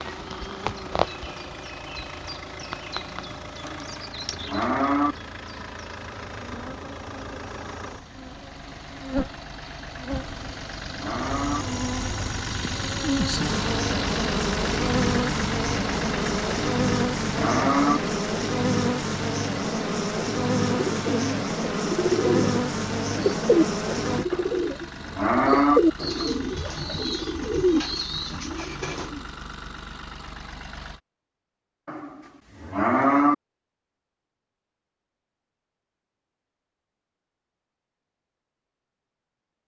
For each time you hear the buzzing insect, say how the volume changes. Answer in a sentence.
You can hear the buzzing insect from 0.0 to 24.2 s, getting louder.